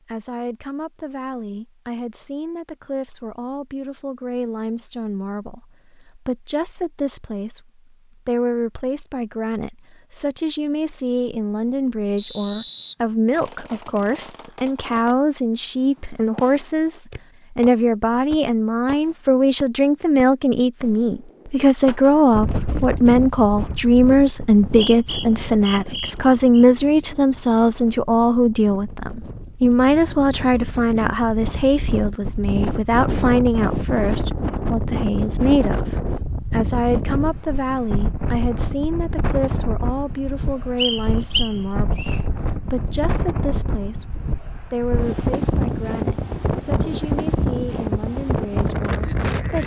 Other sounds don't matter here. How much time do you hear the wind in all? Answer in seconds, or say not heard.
27 s.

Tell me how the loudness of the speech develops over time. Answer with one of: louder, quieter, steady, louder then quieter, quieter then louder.
louder then quieter.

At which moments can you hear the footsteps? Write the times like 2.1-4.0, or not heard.
not heard.